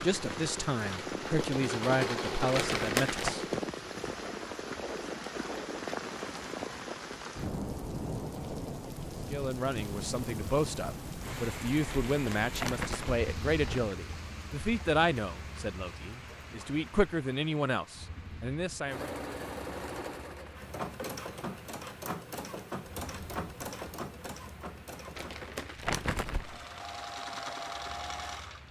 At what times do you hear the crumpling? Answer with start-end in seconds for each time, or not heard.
2.5-3.4, 12.1-13.8, 25.1-26.6.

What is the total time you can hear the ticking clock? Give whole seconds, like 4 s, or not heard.
not heard.